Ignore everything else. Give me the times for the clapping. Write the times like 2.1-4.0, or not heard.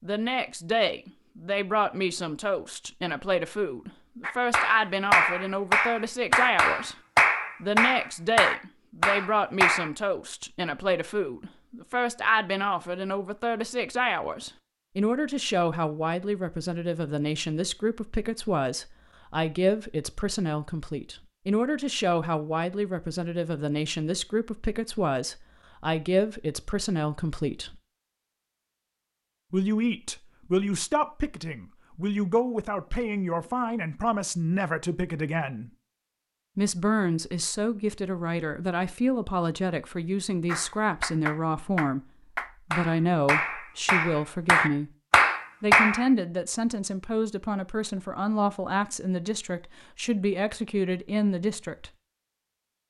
4.2-9.9, 40.5-46.1.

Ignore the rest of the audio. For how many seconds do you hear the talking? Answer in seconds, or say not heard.
47 s.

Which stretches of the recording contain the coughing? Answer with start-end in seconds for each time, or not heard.
not heard.